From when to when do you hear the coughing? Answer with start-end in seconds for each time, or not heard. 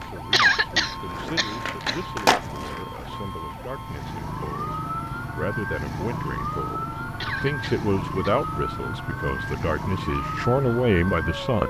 0.3-2.0, 7.2-8.3.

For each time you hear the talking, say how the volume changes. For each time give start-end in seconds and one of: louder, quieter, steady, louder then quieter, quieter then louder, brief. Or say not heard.
0.0-11.6 louder.